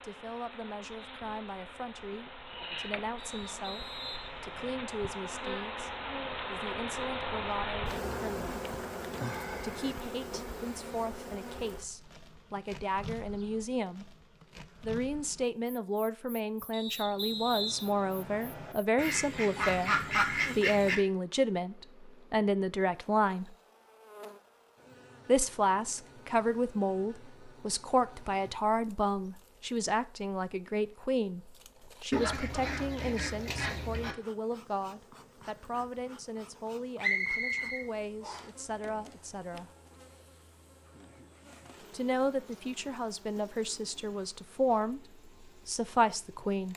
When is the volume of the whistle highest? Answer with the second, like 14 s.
37 s.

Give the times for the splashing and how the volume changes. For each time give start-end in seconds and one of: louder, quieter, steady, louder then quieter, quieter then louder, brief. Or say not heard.
not heard.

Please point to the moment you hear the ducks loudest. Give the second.
20 s.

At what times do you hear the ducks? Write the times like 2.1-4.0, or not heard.
18.9-21.0, 32.1-34.1.